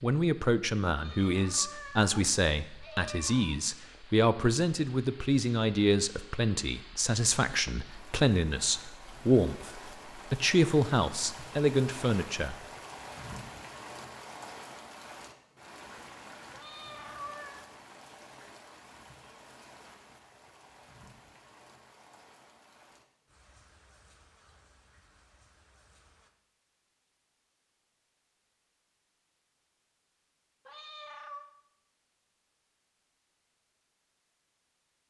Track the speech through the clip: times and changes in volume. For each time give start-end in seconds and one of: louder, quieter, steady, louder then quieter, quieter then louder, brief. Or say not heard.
0.0-12.6 steady.